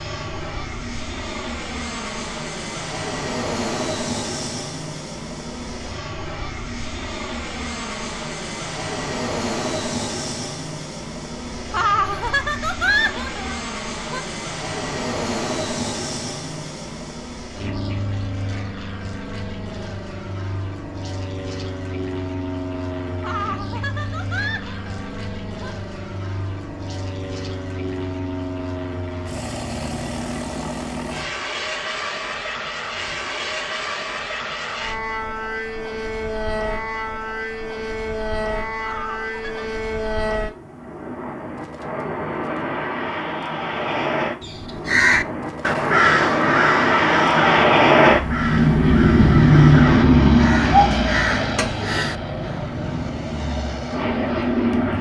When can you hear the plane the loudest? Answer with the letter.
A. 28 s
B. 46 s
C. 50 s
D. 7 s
C.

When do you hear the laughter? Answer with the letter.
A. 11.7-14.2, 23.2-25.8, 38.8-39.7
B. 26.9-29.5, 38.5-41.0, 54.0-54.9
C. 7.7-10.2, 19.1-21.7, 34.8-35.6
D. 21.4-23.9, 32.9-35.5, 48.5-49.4
A.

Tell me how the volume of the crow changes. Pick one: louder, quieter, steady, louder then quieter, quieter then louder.
quieter then louder.